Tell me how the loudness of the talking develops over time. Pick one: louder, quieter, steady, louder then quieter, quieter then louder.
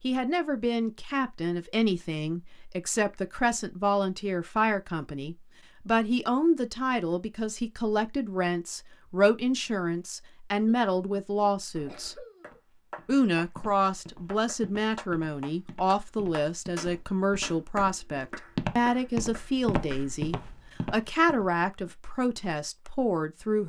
steady.